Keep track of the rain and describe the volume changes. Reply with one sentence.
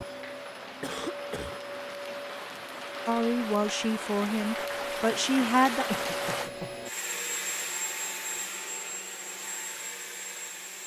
The loudness of the rain goes up.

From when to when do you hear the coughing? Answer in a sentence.
The coughing can be heard from 0.8 to 1.6 s and from 5.8 to 6.8 s.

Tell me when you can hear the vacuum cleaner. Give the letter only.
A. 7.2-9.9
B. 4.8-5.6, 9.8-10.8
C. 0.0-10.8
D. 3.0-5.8
C.